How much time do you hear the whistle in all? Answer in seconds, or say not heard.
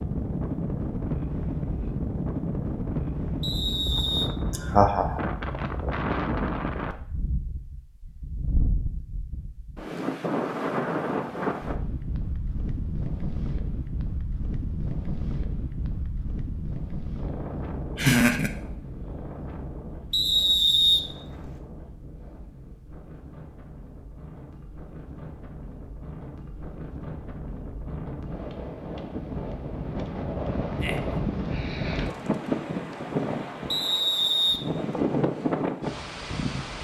3 s.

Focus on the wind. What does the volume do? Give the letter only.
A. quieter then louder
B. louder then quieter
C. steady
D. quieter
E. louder
A.